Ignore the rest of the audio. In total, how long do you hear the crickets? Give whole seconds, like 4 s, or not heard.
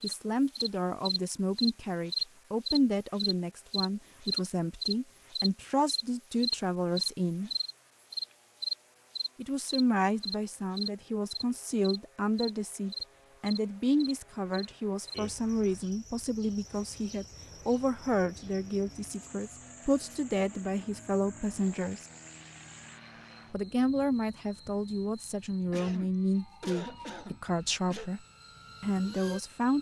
30 s.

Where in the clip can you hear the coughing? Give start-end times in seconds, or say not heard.
25.7-28.1.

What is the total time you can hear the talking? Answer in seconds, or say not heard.
26 s.